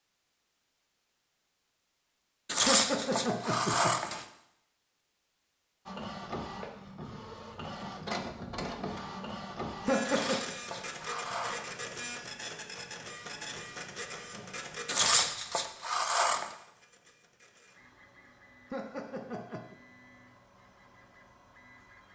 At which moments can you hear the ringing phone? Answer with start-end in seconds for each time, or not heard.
not heard.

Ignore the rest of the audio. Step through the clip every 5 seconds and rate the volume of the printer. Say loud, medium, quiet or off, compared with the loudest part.
off, loud, loud, quiet, quiet.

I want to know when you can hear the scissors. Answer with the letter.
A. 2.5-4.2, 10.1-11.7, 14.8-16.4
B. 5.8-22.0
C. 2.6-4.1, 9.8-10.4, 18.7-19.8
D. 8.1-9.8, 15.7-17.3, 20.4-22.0
A.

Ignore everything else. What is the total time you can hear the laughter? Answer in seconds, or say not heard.
3 s.